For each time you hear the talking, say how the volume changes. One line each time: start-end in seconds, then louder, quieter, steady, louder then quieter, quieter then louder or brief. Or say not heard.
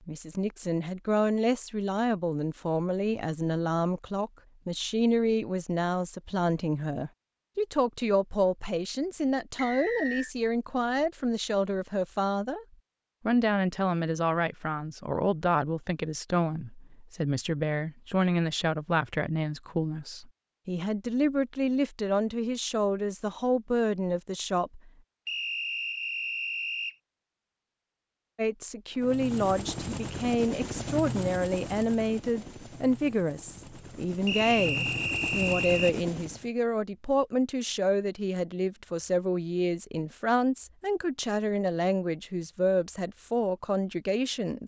0.1-12.7 steady
13.2-24.9 steady
28.4-44.6 steady.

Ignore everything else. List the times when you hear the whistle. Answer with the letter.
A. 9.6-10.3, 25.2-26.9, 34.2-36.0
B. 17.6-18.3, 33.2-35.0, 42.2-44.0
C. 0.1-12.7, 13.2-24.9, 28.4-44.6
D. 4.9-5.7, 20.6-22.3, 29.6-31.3
A.